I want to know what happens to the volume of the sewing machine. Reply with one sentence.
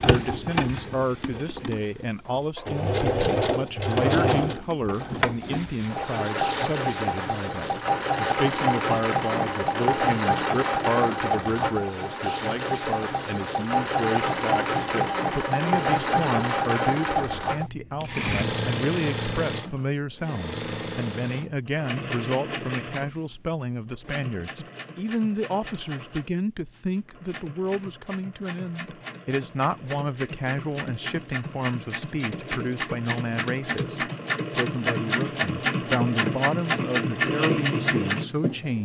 The volume of the sewing machine goes down, then up.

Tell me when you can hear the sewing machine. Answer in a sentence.
You can hear the sewing machine from 0.0 to 38.8 s.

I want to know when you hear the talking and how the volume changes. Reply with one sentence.
You can hear the talking from 0.1 to 38.8 s, at a steady volume.